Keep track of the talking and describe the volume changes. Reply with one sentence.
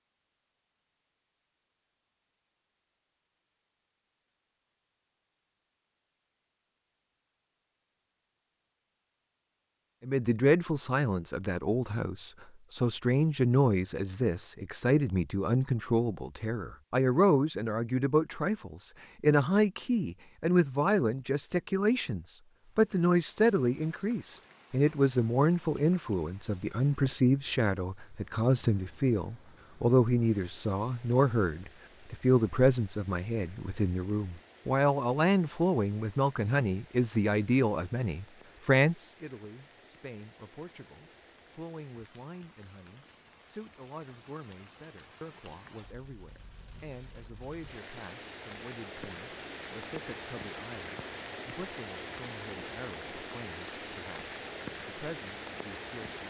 The volume of the talking goes down.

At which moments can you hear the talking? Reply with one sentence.
The talking can be heard from 10.0 to 56.2 s.